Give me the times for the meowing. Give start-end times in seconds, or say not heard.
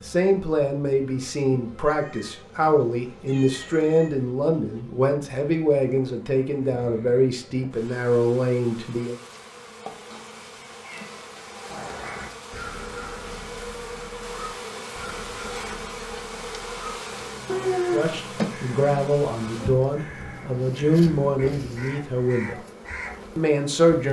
1.8-4.1, 10.1-11.2, 17.4-18.1.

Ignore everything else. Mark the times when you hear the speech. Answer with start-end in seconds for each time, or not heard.
0.0-9.2, 17.9-22.6, 23.4-24.0.